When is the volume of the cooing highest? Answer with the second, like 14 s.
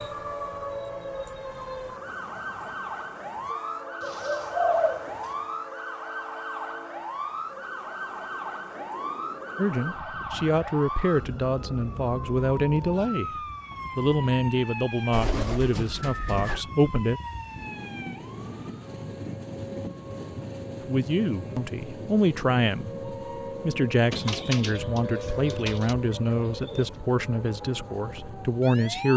5 s.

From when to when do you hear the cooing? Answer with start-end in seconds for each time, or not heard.
4.0-5.3, 15.1-16.6, 24.1-26.9.